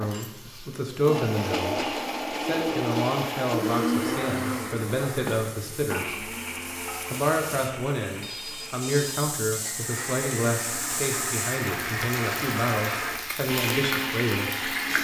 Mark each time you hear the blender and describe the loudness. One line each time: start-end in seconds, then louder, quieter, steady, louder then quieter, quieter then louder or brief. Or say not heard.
0.0-14.9 quieter then louder.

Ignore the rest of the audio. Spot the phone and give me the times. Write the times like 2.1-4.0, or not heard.
2.5-4.2, 8.2-9.3.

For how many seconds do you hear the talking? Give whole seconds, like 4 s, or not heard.
13 s.